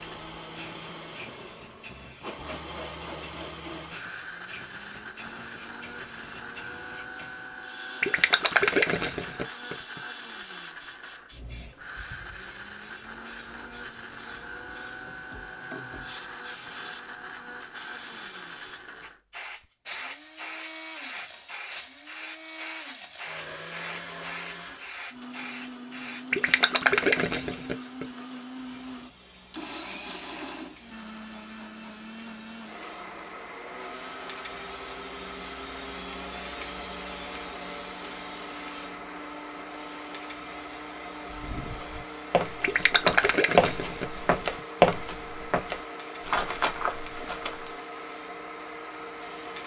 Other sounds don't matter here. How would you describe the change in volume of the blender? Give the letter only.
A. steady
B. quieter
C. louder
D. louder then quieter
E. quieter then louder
A.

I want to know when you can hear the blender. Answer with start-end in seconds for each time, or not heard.
0.0-49.6.